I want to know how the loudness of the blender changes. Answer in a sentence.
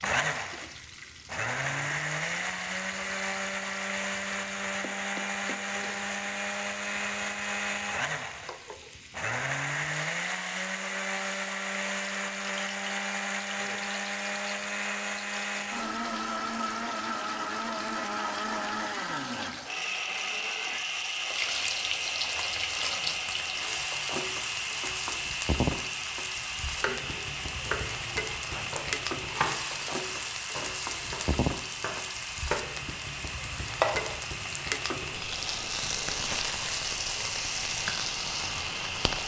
The loudness of the blender goes down.